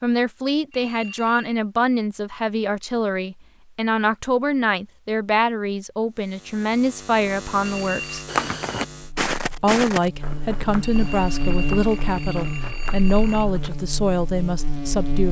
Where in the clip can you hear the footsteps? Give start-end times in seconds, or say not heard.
8.2-13.8.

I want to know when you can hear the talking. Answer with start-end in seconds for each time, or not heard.
0.0-8.2, 9.6-15.2.